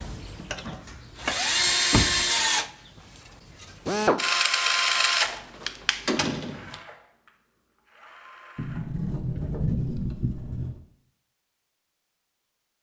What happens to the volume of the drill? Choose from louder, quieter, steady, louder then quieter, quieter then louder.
quieter.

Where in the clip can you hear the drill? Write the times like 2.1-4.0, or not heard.
0.0-9.5.